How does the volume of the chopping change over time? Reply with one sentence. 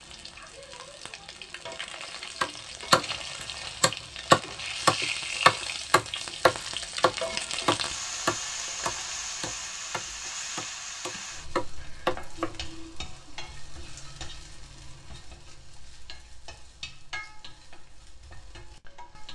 The volume of the chopping goes down, then up.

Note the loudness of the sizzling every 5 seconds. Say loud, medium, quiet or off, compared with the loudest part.
medium, loud, medium, quiet.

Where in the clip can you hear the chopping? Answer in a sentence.
You can hear the chopping from 2.4 to 12.9 s.